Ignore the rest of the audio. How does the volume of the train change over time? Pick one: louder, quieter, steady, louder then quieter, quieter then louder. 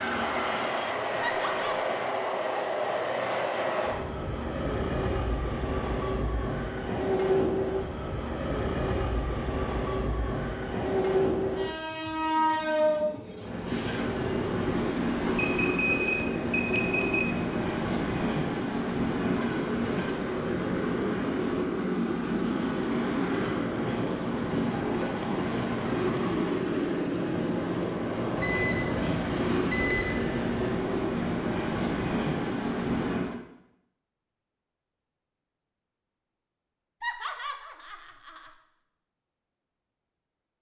steady.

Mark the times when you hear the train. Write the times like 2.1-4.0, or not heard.
0.0-33.4.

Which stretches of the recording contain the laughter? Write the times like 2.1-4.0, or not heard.
1.2-1.8, 37.0-38.5.